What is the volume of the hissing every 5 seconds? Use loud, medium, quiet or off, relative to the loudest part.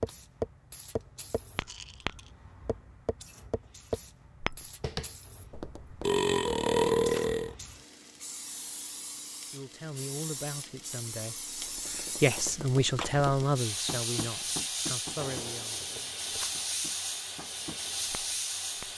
quiet, medium, loud, loud.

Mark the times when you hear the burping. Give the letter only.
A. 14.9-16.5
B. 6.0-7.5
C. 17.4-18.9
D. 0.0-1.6
B.